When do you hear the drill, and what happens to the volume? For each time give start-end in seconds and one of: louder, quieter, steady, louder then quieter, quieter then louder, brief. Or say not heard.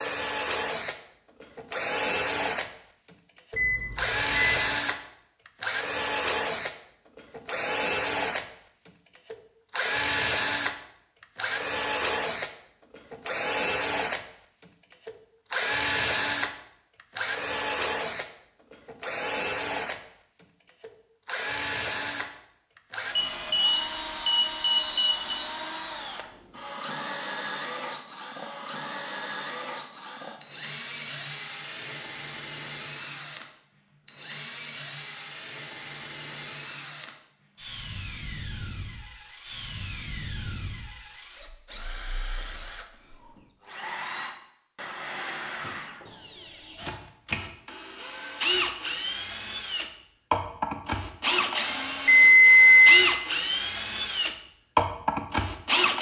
0.0-55.9 quieter then louder.